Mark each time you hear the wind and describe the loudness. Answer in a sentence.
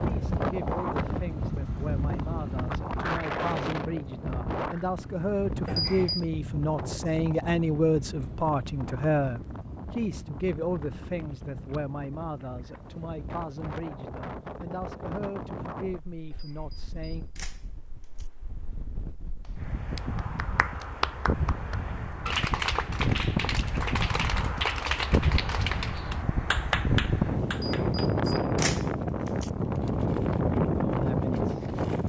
You can hear the wind from 0.0 to 32.0 s, getting quieter then louder.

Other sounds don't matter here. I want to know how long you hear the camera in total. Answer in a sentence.
The camera can be heard for 3 seconds in total.